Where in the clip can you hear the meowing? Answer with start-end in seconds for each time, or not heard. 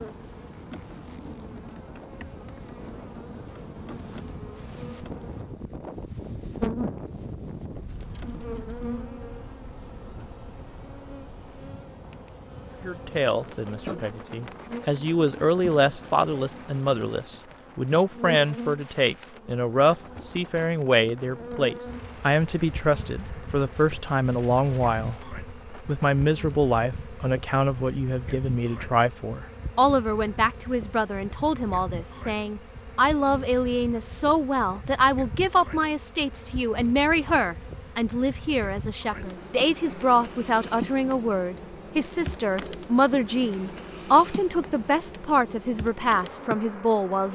not heard.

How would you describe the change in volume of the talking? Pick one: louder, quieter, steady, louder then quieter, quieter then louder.
steady.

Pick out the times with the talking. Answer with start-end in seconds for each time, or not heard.
12.8-47.3.